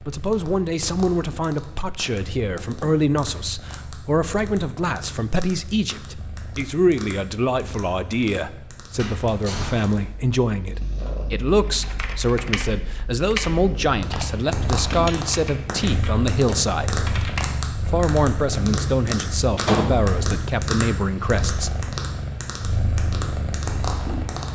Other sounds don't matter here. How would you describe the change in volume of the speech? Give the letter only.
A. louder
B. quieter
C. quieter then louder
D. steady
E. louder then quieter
D.